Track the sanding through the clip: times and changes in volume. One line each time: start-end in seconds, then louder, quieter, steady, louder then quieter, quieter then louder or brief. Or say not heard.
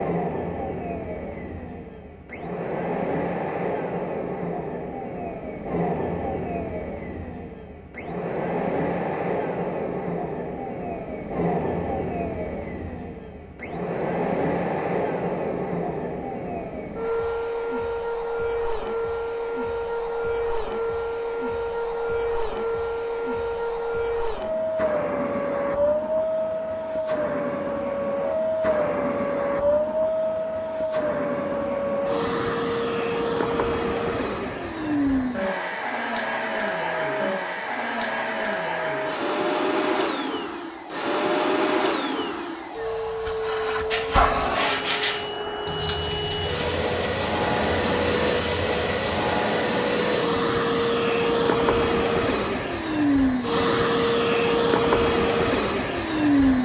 43.9-49.5 quieter.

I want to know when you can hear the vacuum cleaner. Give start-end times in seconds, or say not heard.
0.0-56.6.